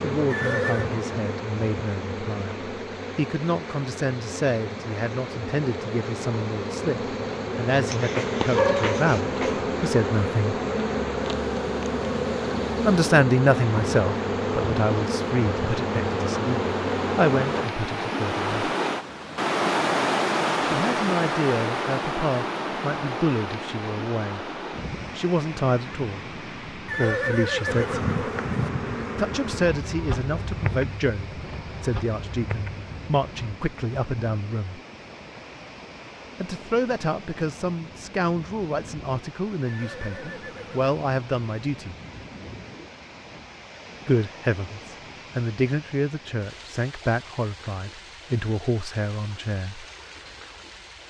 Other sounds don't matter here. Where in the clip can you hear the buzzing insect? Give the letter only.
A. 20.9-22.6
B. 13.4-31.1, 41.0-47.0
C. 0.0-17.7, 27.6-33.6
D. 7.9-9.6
C.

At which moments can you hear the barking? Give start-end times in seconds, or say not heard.
7.9-9.6.